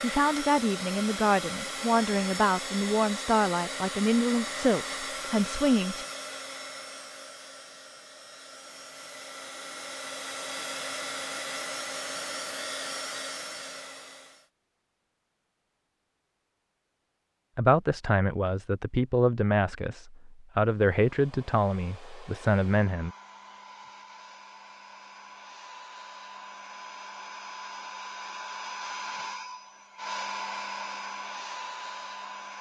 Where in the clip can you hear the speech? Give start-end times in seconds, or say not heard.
0.0-6.0, 17.6-23.1.